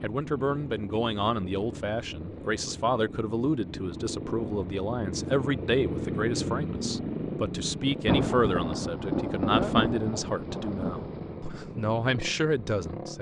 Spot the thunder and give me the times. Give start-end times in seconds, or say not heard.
8.1-11.4.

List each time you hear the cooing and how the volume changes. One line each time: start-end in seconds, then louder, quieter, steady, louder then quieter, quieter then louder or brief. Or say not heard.
not heard.